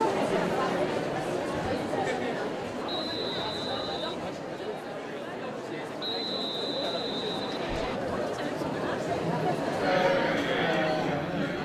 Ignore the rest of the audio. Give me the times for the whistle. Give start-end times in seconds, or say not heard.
2.9-4.2, 6.0-8.0.